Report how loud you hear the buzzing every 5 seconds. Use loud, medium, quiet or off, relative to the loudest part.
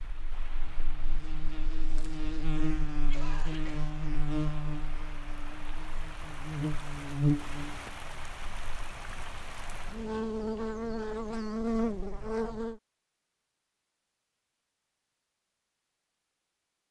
medium, loud, loud, off.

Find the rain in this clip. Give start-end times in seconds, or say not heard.
0.0-10.1.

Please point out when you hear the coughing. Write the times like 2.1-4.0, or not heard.
2.9-3.9.